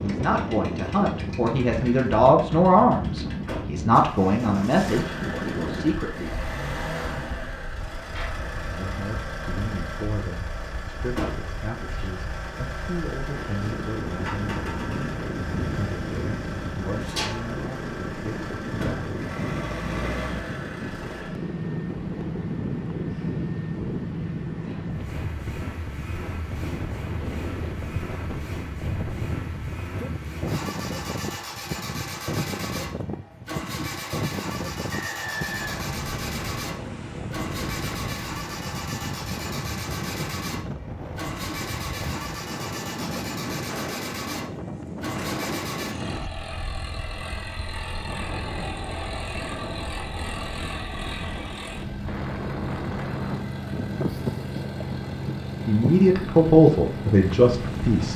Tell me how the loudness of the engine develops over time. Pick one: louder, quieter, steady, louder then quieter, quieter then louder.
steady.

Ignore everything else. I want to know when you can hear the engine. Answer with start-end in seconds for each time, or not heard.
0.0-58.1.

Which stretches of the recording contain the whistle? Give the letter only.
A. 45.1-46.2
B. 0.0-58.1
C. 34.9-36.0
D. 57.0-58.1
C.